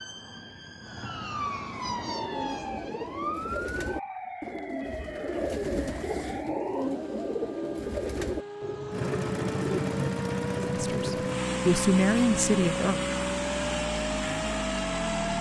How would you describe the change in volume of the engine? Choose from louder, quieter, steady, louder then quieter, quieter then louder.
steady.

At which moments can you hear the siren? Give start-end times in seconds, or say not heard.
0.0-15.3.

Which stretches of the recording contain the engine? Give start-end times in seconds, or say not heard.
8.9-15.3.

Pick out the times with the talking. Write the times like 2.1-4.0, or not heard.
10.8-13.1.